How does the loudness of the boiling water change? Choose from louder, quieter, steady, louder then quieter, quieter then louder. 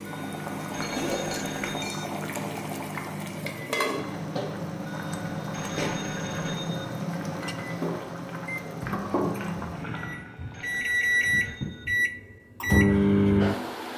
steady.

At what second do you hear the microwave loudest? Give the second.
13 s.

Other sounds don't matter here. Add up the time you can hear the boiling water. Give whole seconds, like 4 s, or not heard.
11 s.